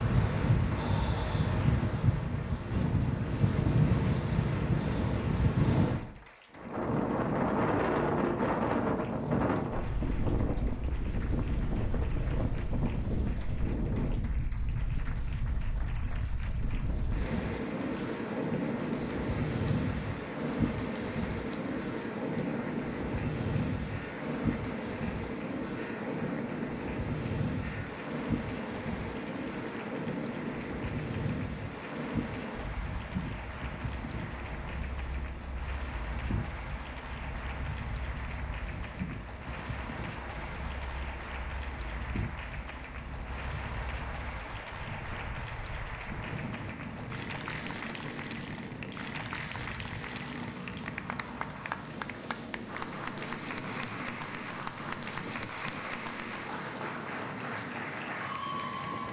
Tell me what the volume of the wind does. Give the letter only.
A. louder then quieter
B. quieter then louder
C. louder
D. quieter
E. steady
D.